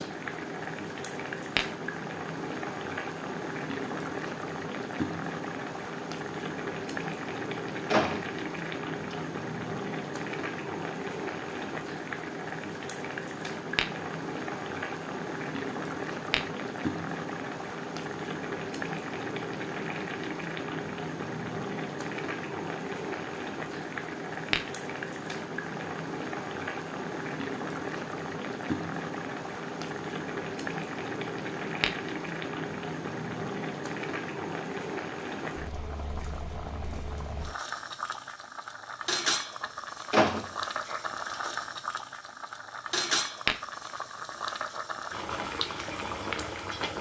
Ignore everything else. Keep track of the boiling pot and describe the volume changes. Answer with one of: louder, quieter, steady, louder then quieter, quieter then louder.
steady.